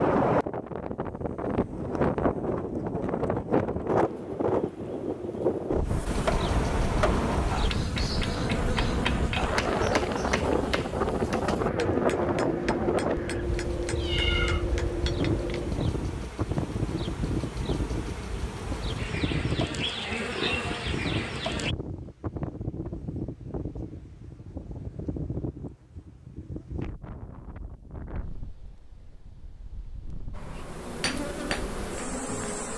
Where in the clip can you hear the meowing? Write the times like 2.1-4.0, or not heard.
14.0-14.7.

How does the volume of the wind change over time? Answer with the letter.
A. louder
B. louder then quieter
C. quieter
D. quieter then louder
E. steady
C.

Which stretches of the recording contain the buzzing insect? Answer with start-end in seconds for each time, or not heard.
6.0-21.8, 30.3-32.7.